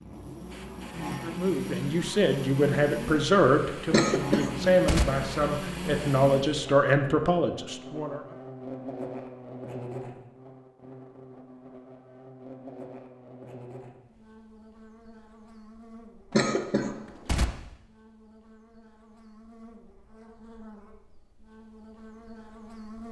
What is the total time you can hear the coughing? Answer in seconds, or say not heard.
2 s.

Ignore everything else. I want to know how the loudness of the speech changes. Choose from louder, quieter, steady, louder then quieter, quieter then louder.
steady.